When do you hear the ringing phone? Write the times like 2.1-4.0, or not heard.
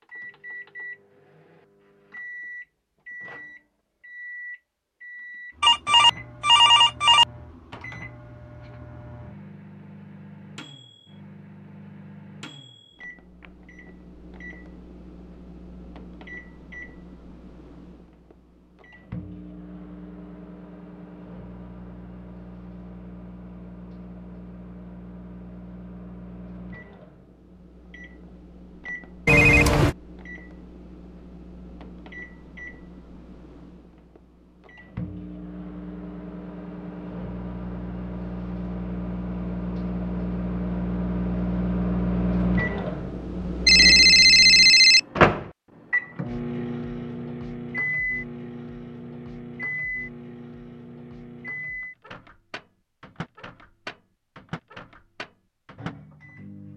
5.6-7.2, 29.2-29.9, 43.6-45.0.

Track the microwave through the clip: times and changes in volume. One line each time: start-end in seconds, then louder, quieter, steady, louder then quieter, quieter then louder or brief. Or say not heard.
0.0-56.7 louder.